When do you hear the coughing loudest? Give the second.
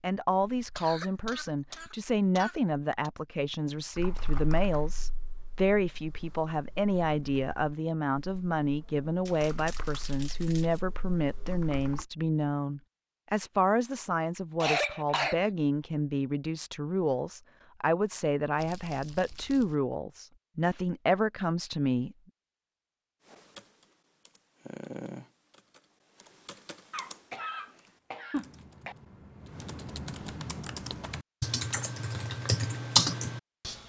15 s.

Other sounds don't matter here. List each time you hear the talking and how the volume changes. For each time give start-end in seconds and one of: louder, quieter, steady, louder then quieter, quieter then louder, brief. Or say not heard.
0.0-22.1 steady.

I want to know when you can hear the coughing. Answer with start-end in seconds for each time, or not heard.
0.6-3.1, 14.6-15.5, 26.9-28.9.